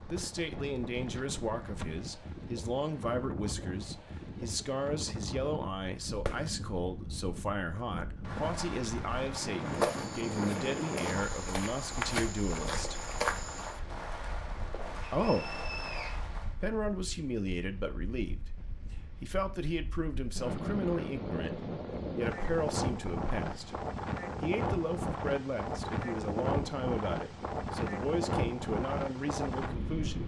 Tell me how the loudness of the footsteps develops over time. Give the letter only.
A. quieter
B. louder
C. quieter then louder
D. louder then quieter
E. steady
B.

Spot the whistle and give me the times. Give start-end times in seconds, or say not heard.
15.1-16.1.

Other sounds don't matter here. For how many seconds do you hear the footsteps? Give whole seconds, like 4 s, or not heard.
4 s.